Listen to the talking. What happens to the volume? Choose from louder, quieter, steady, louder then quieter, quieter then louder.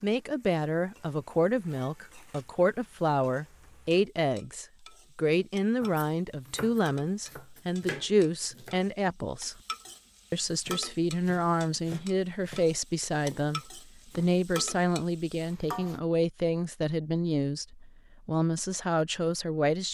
steady.